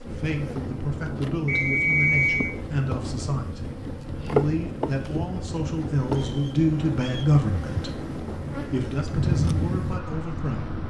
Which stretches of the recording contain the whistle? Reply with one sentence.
You can hear the whistle from 1.4 to 2.5 s and from 6.2 to 7.3 s.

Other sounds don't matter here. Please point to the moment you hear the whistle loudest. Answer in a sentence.
The volume of the whistle peaks at 2 seconds.